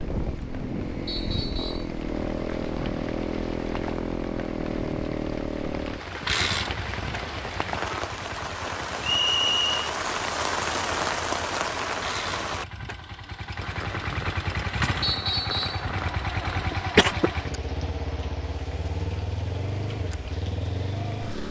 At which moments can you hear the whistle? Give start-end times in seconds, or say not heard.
1.1-1.9, 9.0-9.8, 15.0-15.8.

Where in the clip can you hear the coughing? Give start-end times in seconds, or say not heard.
16.6-17.3.